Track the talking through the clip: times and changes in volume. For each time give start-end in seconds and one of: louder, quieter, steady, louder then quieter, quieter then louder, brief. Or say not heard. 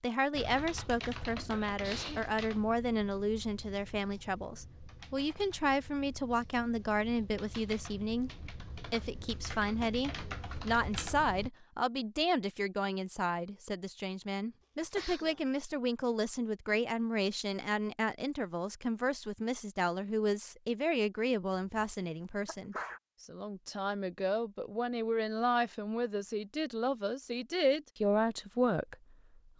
0.0-29.5 steady.